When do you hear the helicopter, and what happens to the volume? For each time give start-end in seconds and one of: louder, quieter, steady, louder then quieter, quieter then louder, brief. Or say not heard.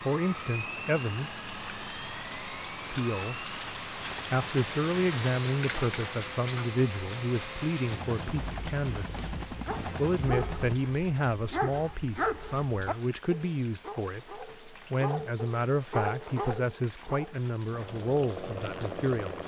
0.0-10.8 steady
17.7-19.4 brief.